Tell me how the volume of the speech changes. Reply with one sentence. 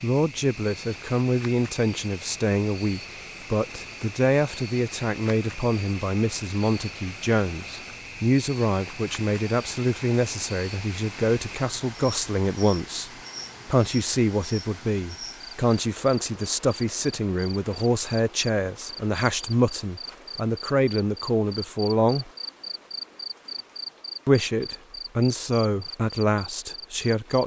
The volume of the speech stays about the same.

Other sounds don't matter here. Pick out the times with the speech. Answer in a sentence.
The speech can be heard from 0.0 to 22.3 s and from 24.2 to 27.4 s.